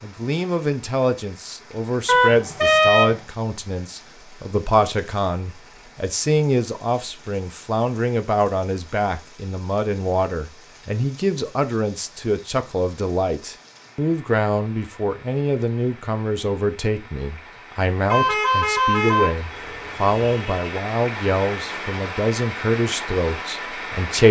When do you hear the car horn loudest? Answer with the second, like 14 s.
3 s.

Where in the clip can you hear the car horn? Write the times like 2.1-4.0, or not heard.
2.0-3.2, 18.1-20.8.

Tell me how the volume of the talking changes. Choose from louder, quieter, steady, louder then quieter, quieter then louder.
steady.